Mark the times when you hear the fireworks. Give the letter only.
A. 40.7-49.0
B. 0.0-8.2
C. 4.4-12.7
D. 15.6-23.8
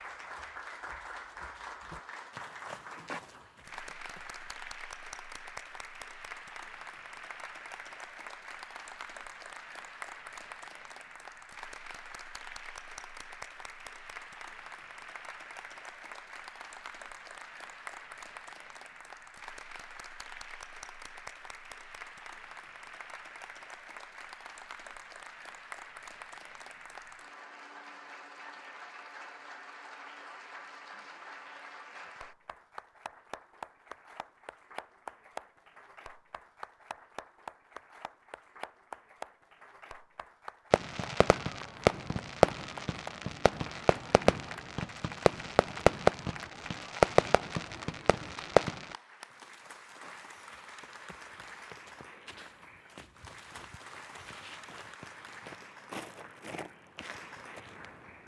A.